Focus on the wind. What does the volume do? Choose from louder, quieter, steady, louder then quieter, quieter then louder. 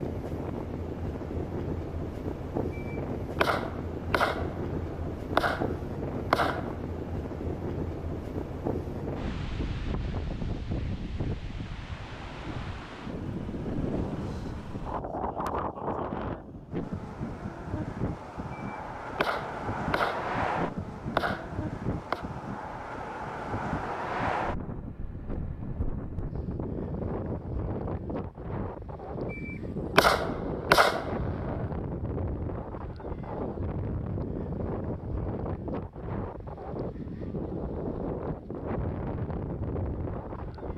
steady.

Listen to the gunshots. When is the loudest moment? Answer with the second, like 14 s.
31 s.